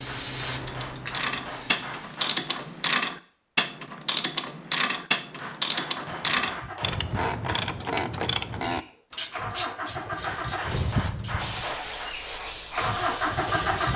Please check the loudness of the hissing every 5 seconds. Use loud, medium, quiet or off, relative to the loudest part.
loud, off, loud.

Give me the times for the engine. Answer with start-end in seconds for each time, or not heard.
0.0-1.9, 5.8-13.9.